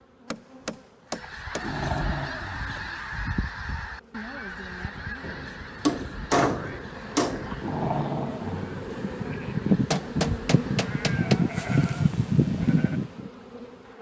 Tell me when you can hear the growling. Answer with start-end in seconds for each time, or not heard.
1.2-3.0, 7.5-8.8.